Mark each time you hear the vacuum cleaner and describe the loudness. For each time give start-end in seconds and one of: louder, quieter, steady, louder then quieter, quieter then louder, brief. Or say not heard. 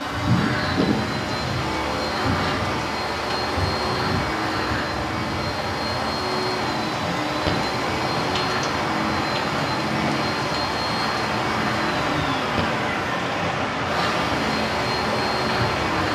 0.0-16.0 steady.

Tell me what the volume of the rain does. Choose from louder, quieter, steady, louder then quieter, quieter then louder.
steady.